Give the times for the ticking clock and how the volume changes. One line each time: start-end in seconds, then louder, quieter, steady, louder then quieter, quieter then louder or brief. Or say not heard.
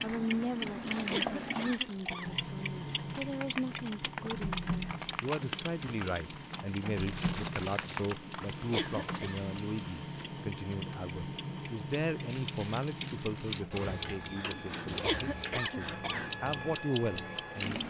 0.0-17.8 quieter then louder.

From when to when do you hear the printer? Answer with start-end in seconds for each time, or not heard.
0.0-17.8.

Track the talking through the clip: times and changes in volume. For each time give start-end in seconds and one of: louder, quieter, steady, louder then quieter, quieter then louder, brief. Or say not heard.
0.0-17.8 steady.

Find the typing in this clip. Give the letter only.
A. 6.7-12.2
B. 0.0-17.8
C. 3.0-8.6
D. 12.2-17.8
C.